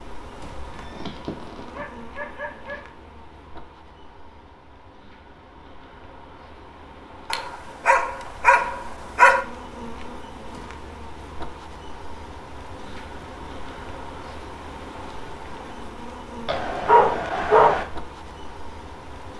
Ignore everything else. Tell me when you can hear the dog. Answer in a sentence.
You can hear the dog from 0.9 to 2.8 s, from 7.3 to 9.4 s and from 16.4 to 17.9 s.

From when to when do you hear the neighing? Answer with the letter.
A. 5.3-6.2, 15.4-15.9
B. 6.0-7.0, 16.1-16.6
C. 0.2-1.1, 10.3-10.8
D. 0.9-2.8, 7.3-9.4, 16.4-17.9
C.